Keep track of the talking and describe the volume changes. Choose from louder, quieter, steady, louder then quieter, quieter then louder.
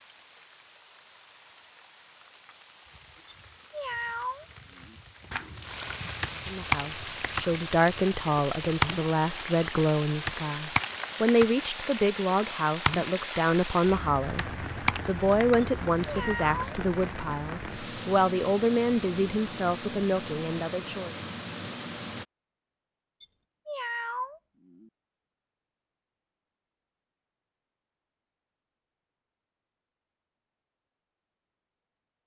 steady.